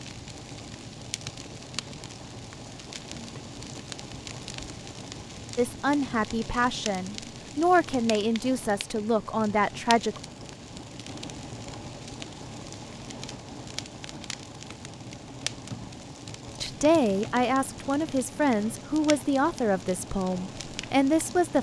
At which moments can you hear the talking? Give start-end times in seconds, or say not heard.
5.5-10.2, 16.6-21.5.